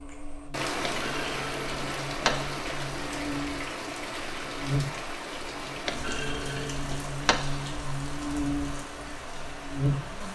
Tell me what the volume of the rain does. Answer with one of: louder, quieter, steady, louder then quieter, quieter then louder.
quieter.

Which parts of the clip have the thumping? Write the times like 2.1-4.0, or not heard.
0.8-2.6, 5.8-7.7.